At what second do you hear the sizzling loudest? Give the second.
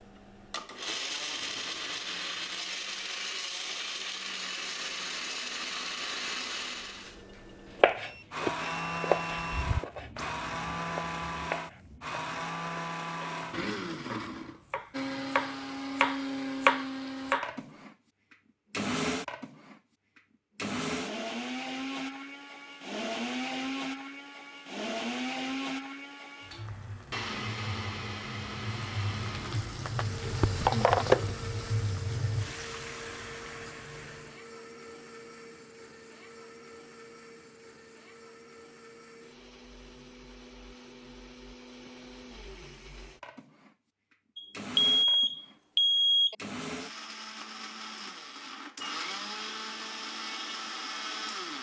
31 s.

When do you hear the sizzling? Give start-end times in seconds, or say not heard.
26.4-34.4.